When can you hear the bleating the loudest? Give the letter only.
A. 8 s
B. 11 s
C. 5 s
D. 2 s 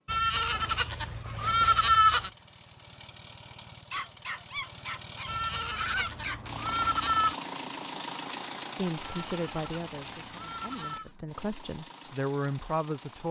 D.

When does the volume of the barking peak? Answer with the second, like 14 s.
6 s.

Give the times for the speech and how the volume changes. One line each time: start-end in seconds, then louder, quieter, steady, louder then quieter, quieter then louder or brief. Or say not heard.
8.8-13.2 quieter then louder.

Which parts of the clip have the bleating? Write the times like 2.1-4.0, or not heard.
0.1-2.3, 5.2-7.3, 9.0-11.1.